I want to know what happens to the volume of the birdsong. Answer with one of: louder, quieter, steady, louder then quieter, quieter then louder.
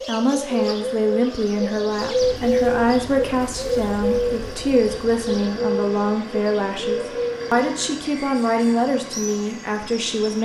quieter.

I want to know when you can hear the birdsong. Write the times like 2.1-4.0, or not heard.
0.0-10.4.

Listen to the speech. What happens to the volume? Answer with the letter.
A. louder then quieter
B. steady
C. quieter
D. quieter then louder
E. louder
B.